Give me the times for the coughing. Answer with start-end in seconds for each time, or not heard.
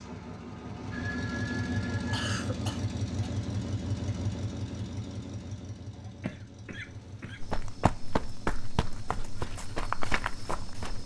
2.1-3.3, 6.2-7.4.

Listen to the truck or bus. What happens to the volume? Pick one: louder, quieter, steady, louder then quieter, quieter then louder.
quieter.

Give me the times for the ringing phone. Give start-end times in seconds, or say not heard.
0.9-2.3.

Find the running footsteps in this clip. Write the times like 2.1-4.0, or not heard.
7.4-11.0.